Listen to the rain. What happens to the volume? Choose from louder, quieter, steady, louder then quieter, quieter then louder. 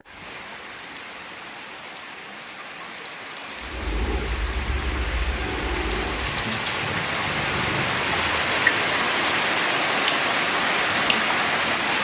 louder.